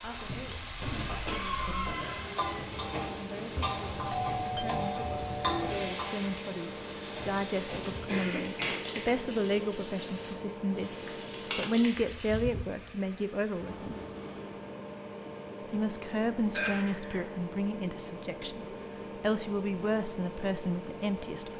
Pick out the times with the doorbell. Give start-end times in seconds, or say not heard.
3.9-5.9.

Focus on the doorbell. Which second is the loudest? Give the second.
4 s.